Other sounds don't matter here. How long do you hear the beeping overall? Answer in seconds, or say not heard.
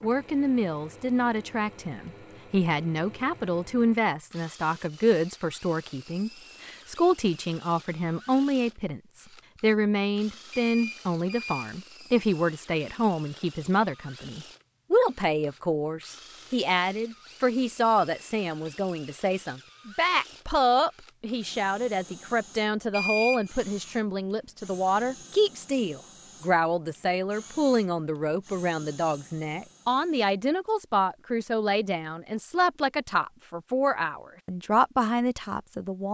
2 s.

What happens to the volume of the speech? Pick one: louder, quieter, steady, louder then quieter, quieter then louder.
steady.